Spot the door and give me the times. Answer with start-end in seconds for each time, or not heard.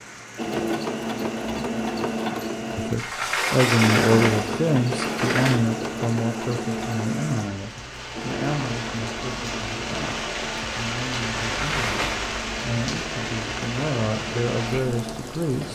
3.0-5.7, 11.5-12.2.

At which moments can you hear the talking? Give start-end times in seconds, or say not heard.
2.8-15.7.